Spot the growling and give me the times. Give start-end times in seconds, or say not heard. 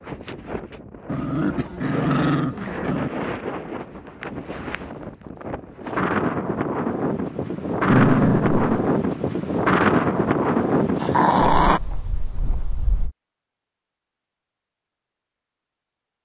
1.1-3.1, 7.8-8.9, 10.9-11.8.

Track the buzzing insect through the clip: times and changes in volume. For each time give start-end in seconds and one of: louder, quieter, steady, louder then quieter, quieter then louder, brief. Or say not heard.
not heard.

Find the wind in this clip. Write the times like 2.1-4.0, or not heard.
0.0-13.2.